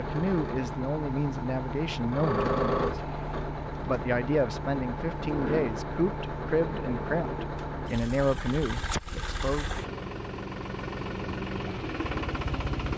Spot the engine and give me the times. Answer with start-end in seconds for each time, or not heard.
0.0-12.9.